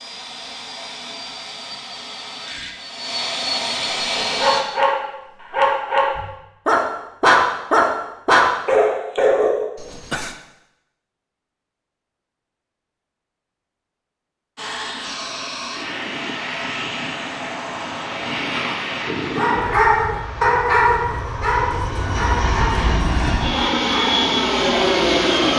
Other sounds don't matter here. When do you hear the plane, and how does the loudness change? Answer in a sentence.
The plane can be heard from 0.0 to 4.6 s, getting louder; and from 14.6 to 25.5 s, getting louder.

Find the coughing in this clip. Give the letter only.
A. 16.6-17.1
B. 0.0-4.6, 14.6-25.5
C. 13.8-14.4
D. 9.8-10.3
D.